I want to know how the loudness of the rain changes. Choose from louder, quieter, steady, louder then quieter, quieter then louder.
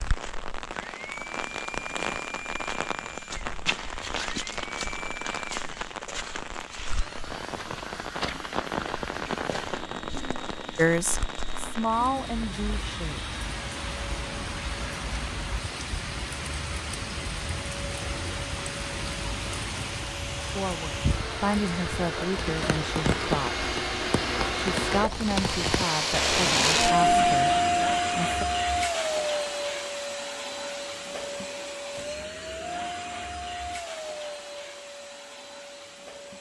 steady.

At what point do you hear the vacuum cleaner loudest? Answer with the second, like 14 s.
27 s.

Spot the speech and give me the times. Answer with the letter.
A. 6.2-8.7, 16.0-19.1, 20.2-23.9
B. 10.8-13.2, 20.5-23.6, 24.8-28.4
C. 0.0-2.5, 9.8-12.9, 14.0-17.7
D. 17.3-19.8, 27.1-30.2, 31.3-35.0
B.